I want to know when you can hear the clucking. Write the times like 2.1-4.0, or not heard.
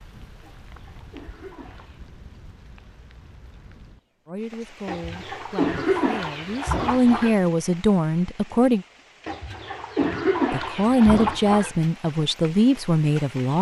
0.4-2.0, 4.8-7.3, 9.2-11.8.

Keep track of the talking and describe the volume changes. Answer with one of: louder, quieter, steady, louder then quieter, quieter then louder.
louder.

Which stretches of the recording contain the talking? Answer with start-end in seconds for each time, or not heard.
4.2-8.8, 10.5-13.5.